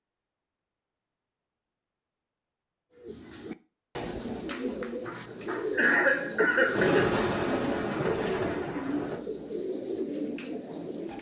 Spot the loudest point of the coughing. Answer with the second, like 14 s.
6 s.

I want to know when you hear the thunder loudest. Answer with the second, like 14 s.
7 s.